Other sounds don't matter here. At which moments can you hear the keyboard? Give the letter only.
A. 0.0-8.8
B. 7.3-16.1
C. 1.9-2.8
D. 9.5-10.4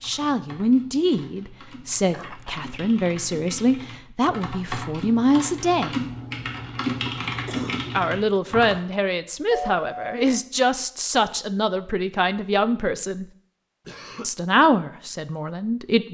A.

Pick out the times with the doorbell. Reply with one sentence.
You can hear the doorbell from 9.5 to 10.4 s.